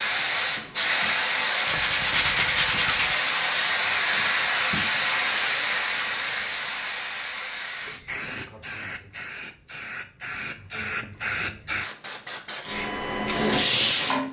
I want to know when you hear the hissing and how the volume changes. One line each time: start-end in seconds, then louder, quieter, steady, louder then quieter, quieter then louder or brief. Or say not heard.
0.0-14.2 quieter then louder.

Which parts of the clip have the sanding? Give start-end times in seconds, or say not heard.
1.6-3.2.